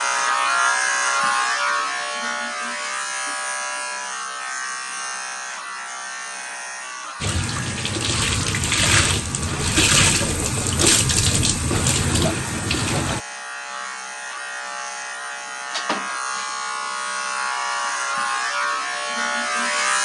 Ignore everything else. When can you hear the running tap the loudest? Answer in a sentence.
The loudest moment of the running tap is at 10 seconds.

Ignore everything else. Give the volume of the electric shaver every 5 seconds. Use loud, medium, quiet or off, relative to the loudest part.
loud, medium, medium, loud.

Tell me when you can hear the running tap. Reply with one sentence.
You can hear the running tap from 7.2 to 13.2 s.